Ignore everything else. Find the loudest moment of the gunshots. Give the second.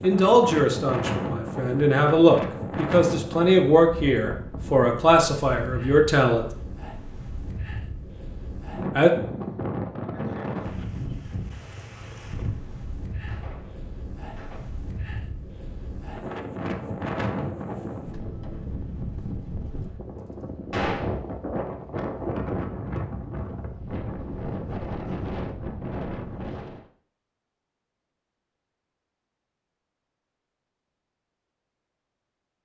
21 s.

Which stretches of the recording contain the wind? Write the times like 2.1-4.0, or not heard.
0.0-26.9.